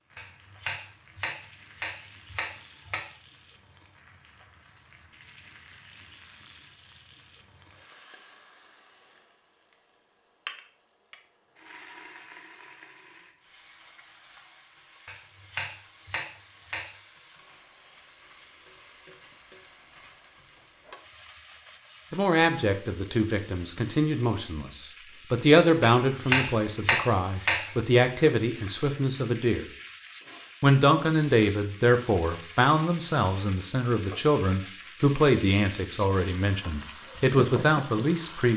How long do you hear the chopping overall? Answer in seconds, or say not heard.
7 s.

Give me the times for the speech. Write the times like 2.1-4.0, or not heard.
22.1-29.6, 30.6-38.5.